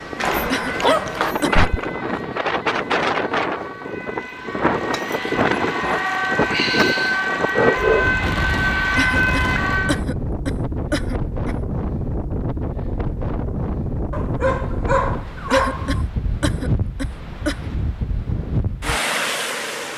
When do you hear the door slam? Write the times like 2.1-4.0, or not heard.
not heard.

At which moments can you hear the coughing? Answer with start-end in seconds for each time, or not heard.
0.5-1.7, 8.9-11.6, 15.5-17.7.